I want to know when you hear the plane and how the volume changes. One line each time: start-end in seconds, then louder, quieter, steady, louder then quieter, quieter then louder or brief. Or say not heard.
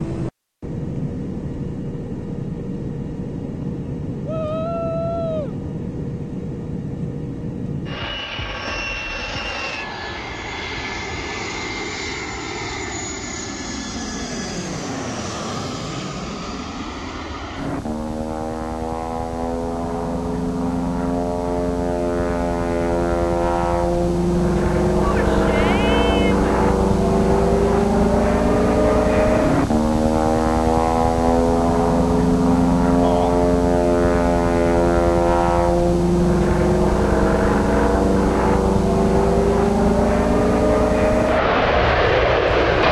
0.0-42.8 louder.